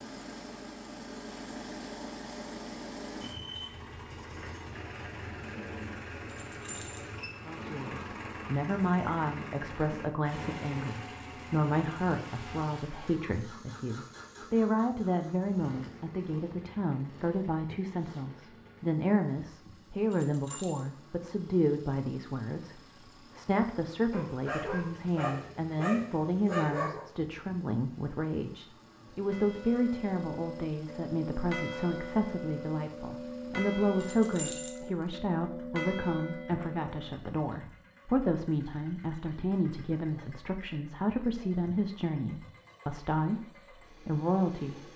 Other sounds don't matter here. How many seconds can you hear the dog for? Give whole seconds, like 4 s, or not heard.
3 s.